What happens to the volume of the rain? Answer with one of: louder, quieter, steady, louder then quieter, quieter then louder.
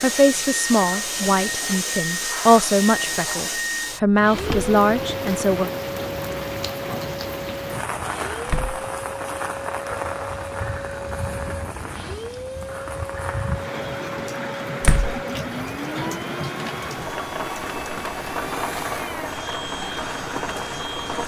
steady.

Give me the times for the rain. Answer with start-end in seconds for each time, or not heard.
4.2-21.2.